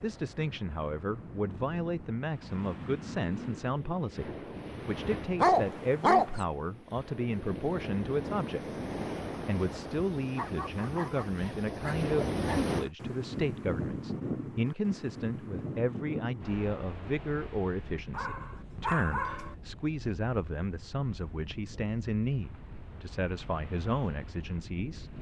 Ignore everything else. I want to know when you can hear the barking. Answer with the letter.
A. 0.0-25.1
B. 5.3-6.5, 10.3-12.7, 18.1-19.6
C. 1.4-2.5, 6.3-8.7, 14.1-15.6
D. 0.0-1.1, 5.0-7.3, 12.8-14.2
B.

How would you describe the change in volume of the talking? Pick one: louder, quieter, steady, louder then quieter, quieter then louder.
steady.